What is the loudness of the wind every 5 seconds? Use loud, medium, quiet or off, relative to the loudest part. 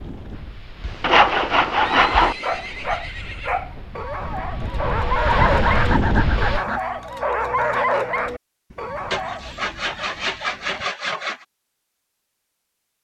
quiet, loud, off.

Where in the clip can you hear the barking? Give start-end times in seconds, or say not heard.
2.4-9.6.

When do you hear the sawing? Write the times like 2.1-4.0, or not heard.
0.8-2.4, 5.2-6.8, 9.1-11.4.